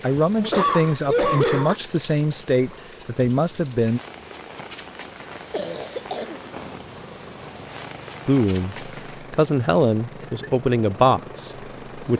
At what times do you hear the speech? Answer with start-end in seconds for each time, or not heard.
0.0-4.0, 8.2-12.1.